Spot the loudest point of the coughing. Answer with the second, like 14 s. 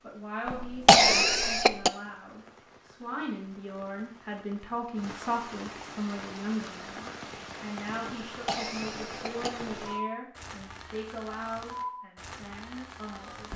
1 s.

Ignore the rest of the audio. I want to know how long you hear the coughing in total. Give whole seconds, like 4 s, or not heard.
3 s.